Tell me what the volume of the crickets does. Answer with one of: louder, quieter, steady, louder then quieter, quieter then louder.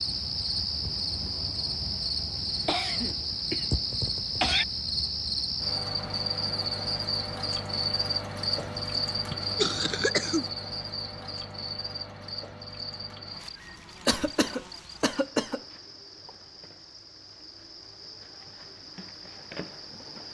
quieter.